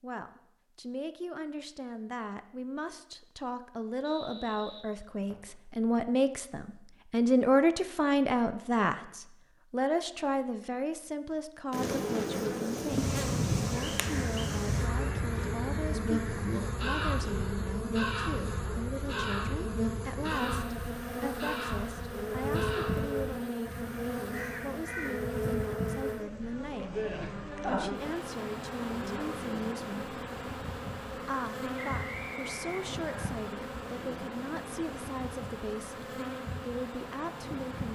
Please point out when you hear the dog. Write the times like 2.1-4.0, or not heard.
not heard.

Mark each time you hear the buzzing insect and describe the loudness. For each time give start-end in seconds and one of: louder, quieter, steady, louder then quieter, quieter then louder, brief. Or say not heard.
11.7-37.8 quieter.